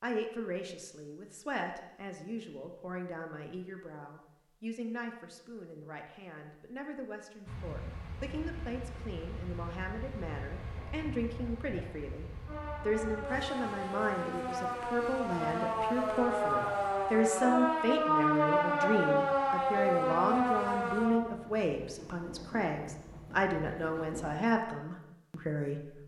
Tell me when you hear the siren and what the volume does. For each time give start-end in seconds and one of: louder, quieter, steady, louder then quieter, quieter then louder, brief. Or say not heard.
12.4-21.2 louder.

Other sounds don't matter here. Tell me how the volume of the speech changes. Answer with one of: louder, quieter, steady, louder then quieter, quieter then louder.
louder.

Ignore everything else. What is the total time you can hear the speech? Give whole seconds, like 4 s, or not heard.
26 s.